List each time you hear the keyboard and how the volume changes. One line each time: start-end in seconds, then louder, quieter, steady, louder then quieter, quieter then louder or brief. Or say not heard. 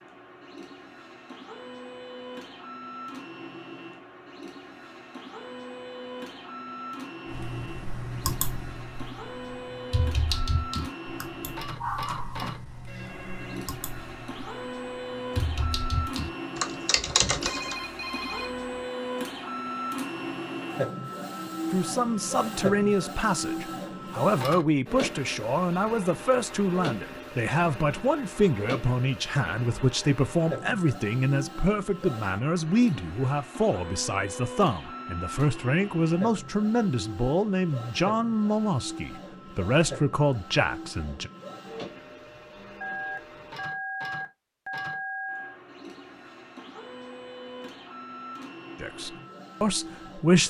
7.3-17.8 quieter then louder.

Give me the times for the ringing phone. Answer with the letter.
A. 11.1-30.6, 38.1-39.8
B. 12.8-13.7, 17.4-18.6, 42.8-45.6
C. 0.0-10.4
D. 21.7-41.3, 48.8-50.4
B.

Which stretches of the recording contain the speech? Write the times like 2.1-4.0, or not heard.
21.7-41.3, 48.8-50.4.